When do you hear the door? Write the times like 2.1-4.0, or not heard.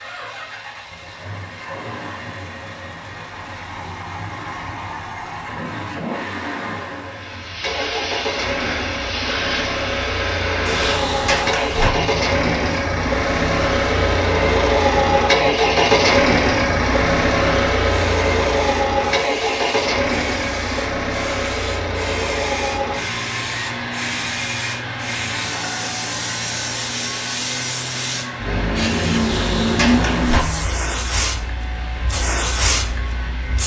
10.7-11.9, 29.1-30.4.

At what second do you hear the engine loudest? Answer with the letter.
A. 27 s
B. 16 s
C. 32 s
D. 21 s
B.